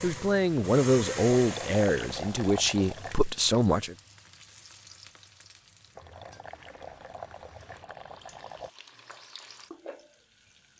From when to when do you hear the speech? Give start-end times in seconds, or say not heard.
0.0-4.0.